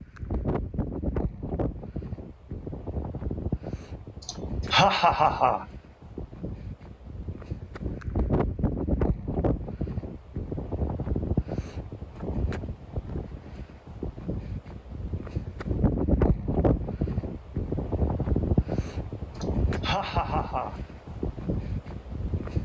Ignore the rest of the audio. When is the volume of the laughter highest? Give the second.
5 s.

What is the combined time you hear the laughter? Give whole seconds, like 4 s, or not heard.
3 s.